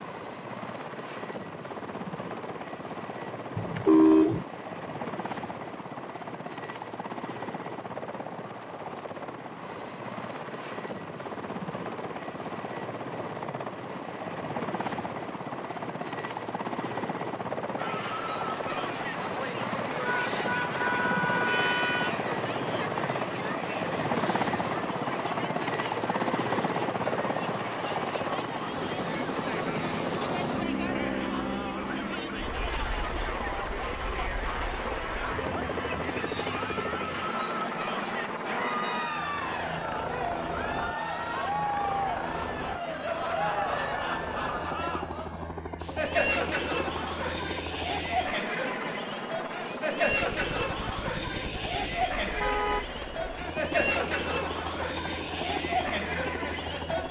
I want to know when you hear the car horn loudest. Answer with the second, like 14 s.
4 s.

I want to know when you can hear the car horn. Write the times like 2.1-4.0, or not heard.
3.5-4.5, 20.0-22.1, 52.4-52.9.